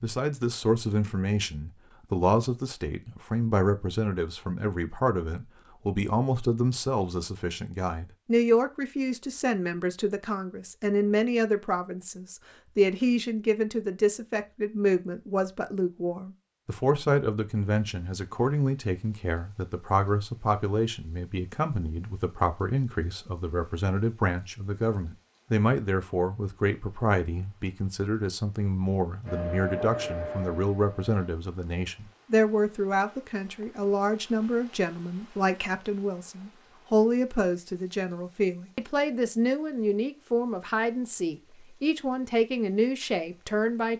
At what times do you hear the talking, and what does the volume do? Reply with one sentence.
The talking can be heard from 0.0 to 43.9 s, at a steady volume.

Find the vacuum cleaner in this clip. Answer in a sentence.
The vacuum cleaner can be heard from 29.2 to 31.2 s.